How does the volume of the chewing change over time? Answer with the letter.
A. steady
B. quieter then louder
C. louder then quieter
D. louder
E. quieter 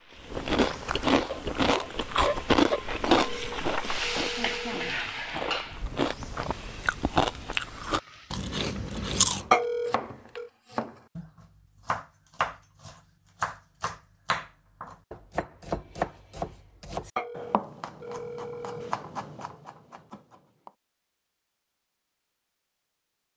B.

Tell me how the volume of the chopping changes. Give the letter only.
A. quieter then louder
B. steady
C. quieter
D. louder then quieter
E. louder
D.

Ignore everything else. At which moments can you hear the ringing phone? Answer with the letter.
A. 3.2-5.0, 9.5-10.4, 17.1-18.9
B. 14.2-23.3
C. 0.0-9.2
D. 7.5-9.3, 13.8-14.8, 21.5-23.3
A.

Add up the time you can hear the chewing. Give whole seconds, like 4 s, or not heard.
9 s.